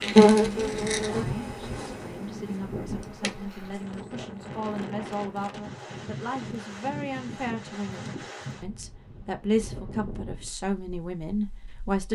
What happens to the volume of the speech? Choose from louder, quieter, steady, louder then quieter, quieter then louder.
louder.